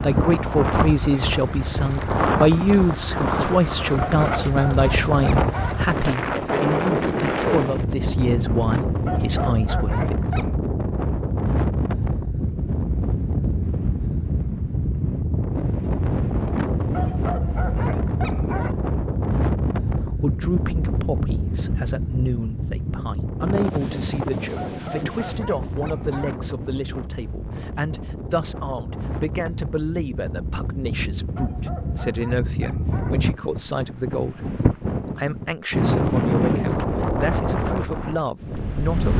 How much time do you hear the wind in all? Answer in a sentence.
You can hear the wind for 39 seconds altogether.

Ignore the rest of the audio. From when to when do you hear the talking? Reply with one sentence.
You can hear the talking from 0.0 to 10.3 s and from 19.9 to 39.1 s.